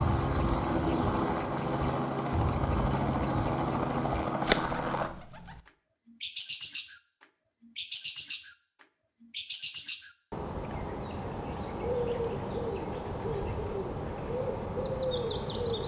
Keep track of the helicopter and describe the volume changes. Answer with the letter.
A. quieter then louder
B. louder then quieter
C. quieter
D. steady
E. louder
D.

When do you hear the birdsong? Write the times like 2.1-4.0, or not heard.
0.0-15.8.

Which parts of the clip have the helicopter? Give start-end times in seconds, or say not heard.
0.0-5.1.